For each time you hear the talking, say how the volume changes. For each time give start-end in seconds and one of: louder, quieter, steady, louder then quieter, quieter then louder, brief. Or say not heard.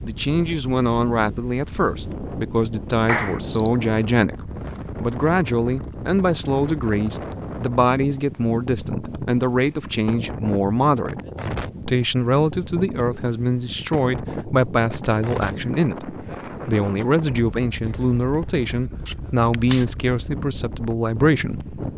0.0-11.2 steady
11.8-21.8 steady.